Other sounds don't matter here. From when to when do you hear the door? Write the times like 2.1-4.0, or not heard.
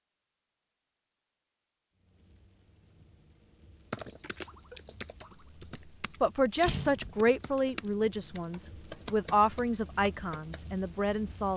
6.6-7.2.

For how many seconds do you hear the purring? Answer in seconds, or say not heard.
not heard.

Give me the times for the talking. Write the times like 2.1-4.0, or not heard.
6.2-11.5.